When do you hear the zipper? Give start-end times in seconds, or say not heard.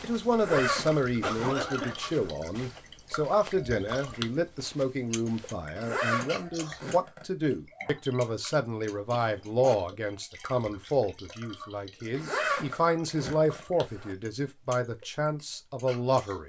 0.3-2.3, 5.8-7.2, 12.1-14.2.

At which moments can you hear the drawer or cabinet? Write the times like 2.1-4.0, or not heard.
not heard.